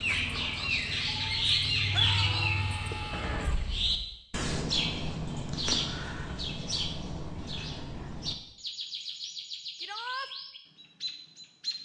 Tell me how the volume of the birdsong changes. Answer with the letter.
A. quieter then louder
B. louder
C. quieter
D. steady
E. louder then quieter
C.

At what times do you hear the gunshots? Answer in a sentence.
The gunshots can be heard from 3.1 to 3.6 s.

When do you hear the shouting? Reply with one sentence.
You can hear the shouting from 1.9 to 3.5 s and from 9.8 to 10.3 s.